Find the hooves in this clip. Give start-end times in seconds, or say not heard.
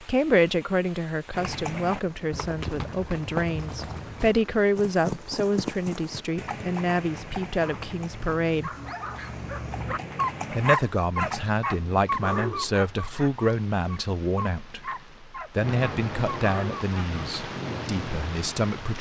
1.4-11.4.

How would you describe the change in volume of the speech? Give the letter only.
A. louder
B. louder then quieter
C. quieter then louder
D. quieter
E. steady
E.